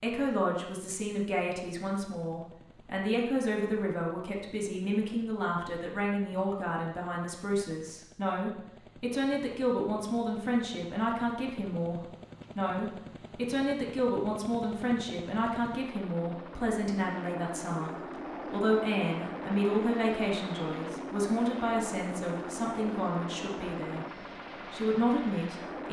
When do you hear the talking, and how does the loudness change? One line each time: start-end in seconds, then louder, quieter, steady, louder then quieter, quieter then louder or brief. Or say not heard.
0.0-24.1 steady
24.7-25.8 brief.